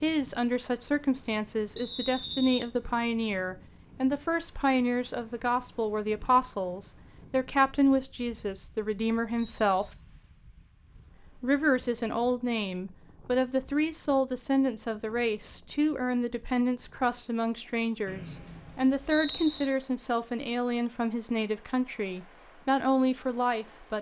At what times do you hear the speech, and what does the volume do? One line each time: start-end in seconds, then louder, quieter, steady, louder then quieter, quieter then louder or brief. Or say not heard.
0.0-9.9 steady
11.4-23.9 steady.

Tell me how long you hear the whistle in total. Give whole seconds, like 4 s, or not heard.
3 s.